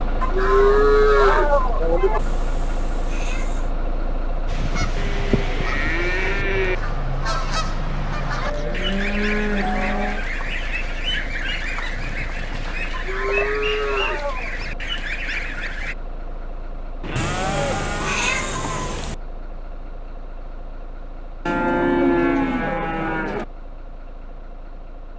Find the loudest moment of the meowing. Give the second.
18 s.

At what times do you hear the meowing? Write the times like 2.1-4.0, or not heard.
2.1-3.8, 17.1-19.1.